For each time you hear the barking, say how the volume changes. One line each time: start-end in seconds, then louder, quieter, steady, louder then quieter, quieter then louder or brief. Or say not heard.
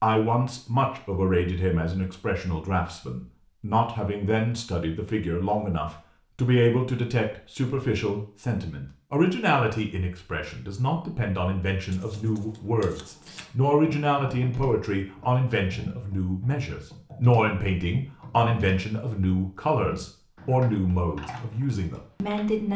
not heard.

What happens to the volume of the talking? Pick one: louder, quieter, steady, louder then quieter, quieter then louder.
steady.